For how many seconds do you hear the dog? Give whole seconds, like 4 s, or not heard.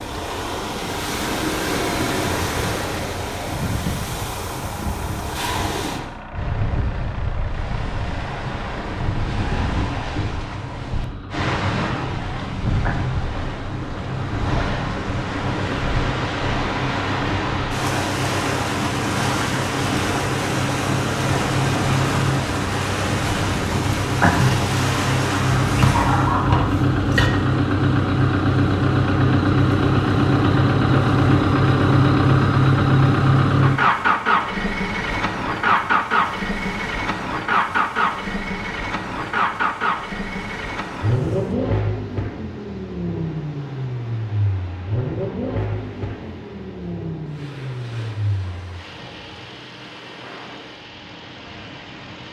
2 s.